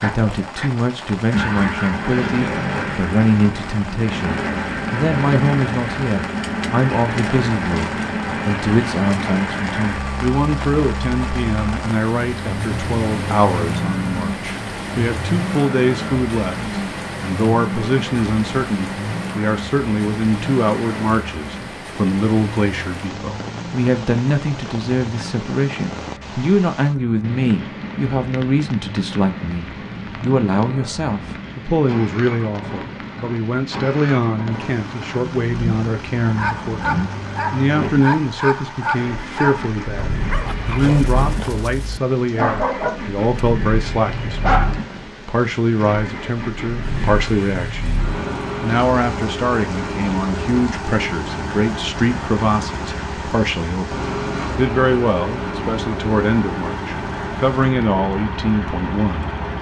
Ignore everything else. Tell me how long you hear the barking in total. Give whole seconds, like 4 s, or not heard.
8 s.